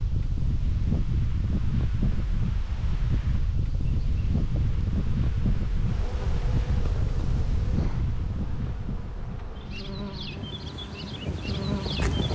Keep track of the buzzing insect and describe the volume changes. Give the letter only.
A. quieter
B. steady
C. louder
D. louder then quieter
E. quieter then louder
C.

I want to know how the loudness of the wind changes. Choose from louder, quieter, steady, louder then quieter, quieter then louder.
quieter.